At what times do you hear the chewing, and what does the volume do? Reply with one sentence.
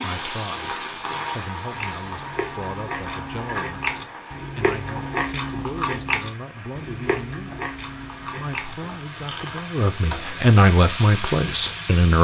You can hear the chewing from 1.7 to 9.7 s, getting louder then quieter.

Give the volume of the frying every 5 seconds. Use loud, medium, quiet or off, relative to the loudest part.
loud, medium, loud.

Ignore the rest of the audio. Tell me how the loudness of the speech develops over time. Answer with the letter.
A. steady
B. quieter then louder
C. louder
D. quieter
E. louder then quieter
C.